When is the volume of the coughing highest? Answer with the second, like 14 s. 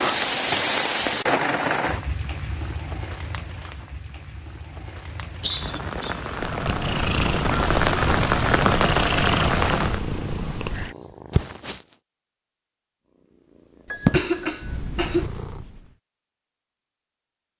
14 s.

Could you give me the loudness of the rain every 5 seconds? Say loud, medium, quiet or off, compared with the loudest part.
loud, loud, off, off.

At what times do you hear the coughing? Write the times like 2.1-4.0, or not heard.
5.4-6.2, 13.9-15.3.